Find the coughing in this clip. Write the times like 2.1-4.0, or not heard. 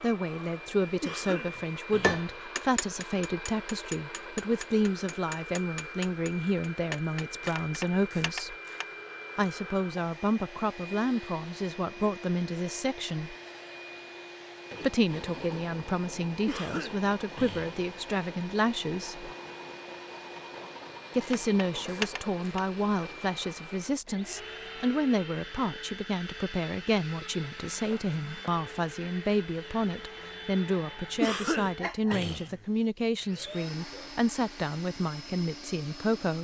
1.0-2.2, 16.4-17.9, 31.2-32.6.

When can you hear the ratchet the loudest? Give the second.
22 s.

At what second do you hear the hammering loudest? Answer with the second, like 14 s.
2 s.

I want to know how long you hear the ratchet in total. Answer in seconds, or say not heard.
3 s.